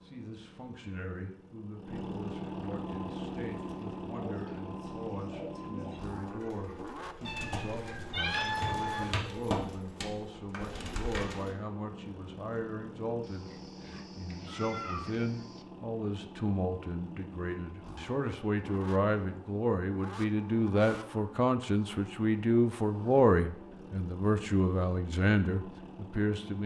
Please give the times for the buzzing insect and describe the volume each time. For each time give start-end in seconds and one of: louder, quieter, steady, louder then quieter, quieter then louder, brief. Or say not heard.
not heard.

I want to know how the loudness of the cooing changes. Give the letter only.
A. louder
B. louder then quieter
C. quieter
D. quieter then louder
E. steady
B.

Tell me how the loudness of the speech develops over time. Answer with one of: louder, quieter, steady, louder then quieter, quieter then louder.
louder.